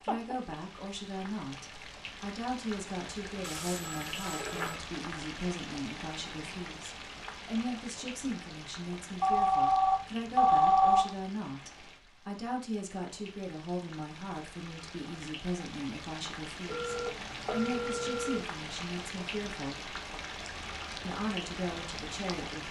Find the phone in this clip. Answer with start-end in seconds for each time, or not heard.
3.4-4.8, 9.2-11.0, 16.6-18.4.